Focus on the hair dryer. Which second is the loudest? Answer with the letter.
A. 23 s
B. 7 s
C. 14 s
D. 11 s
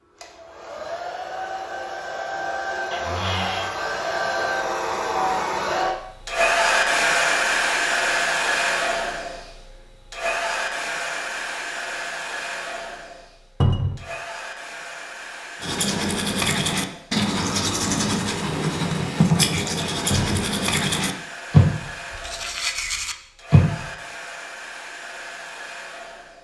B.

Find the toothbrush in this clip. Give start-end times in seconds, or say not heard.
15.6-23.9.